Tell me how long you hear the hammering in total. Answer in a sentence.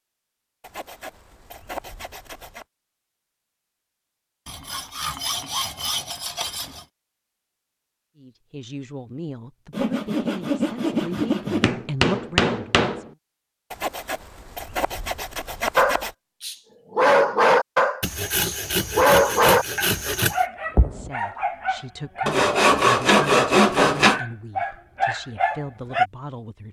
The hammering can be heard for 2 seconds in total.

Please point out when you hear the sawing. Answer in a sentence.
The sawing can be heard from 0.6 to 2.6 s, from 4.5 to 6.8 s, from 9.7 to 11.8 s, from 13.7 to 16.1 s, from 18.0 to 20.4 s and from 22.2 to 24.2 s.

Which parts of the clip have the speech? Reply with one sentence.
The speech can be heard from 8.2 to 13.2 s and from 20.8 to 26.6 s.